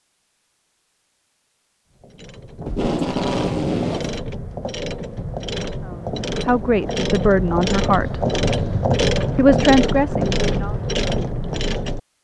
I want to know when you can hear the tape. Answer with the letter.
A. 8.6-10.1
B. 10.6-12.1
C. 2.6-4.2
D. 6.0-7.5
C.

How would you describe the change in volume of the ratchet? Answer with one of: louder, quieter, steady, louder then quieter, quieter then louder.
louder.